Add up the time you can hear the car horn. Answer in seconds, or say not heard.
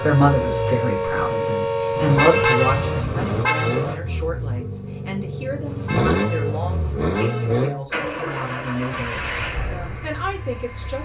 4 s.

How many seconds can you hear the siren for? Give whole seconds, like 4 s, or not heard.
3 s.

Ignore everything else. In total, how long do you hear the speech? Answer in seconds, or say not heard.
11 s.